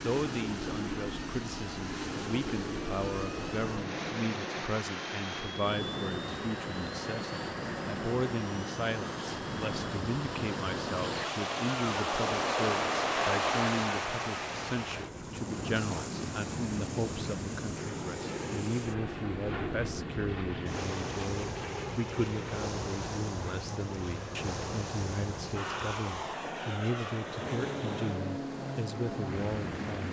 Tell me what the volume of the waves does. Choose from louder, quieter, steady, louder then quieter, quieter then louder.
louder then quieter.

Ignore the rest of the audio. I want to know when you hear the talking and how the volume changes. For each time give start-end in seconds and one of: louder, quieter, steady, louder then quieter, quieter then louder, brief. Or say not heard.
0.0-30.0 steady.